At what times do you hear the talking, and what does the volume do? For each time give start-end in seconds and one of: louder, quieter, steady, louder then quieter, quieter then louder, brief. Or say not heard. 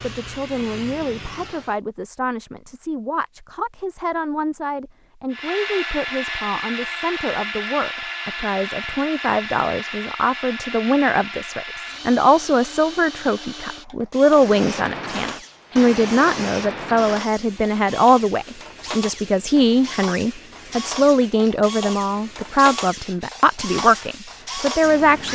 0.0-25.2 louder.